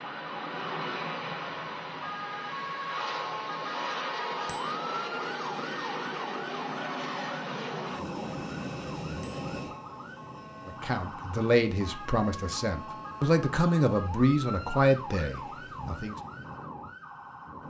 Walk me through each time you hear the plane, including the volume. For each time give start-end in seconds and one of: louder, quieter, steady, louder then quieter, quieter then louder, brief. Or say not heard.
0.0-17.6 quieter.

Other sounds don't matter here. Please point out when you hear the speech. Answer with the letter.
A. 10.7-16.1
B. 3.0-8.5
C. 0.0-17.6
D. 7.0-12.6
A.